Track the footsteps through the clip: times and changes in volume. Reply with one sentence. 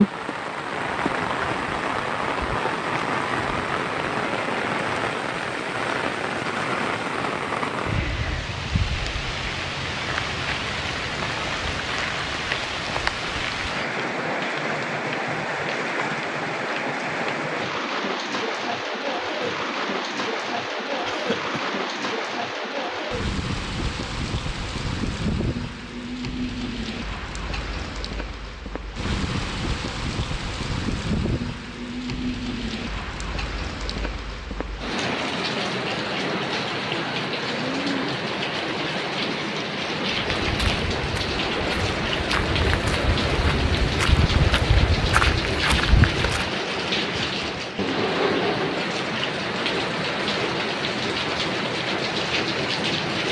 You can hear the footsteps from 40.1 to 46.5 s, getting louder.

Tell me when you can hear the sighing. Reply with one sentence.
The sighing can't be heard in this clip.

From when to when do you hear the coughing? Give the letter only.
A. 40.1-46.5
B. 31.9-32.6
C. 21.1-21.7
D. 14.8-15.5
C.